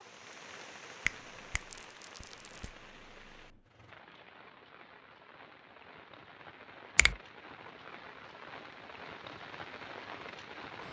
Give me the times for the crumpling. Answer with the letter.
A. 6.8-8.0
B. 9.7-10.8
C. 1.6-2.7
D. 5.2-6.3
C.